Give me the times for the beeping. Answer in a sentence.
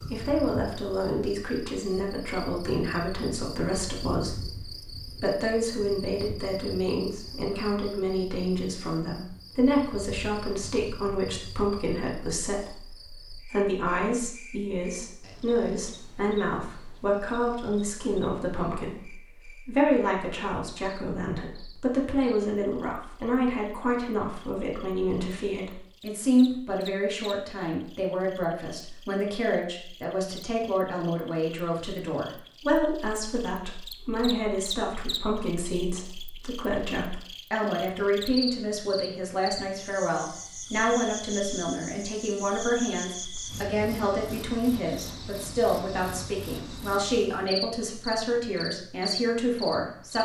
You can't hear the beeping here.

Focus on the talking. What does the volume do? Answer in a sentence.
The loudness of the talking stays about the same.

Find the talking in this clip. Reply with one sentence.
The talking can be heard from 0.0 to 50.2 s.